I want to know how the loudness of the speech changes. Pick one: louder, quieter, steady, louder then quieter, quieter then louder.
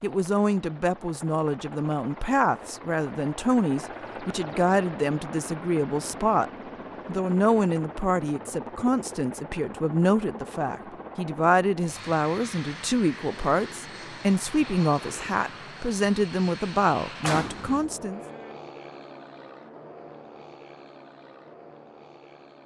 steady.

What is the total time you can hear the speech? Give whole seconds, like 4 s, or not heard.
18 s.